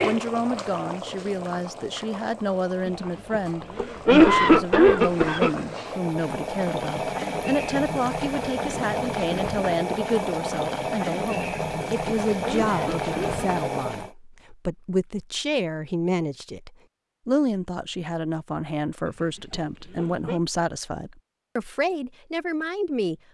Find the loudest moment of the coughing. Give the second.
4 s.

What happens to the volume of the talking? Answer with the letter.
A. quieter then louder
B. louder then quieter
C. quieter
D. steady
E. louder
D.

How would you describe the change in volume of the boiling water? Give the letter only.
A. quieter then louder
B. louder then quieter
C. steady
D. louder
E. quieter
D.